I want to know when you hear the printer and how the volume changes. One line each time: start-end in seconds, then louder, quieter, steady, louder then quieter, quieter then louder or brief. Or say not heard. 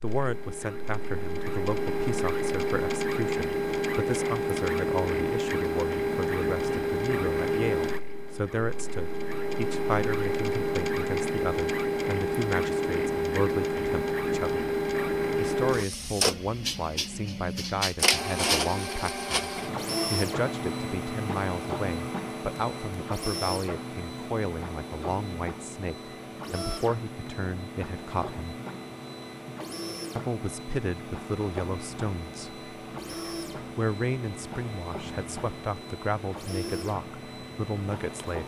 0.0-38.4 quieter.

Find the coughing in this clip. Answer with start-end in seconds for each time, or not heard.
not heard.